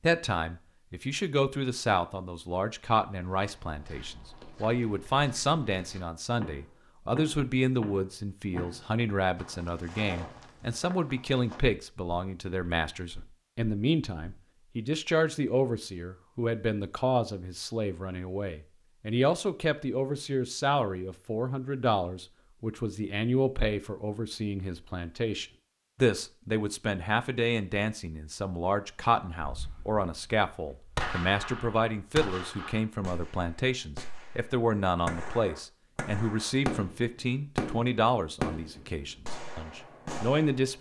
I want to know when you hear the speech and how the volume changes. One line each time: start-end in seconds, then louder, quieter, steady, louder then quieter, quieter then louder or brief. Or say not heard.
0.0-40.7 steady.